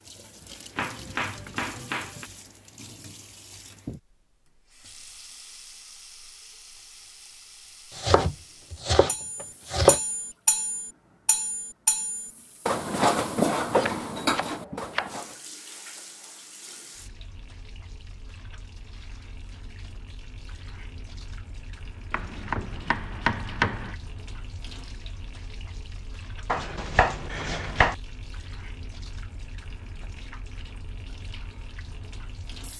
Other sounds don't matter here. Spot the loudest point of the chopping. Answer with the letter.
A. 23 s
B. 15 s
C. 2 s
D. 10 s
D.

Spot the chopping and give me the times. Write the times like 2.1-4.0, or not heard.
0.8-2.2, 7.9-10.0, 13.8-15.1, 22.1-23.9, 26.4-27.9.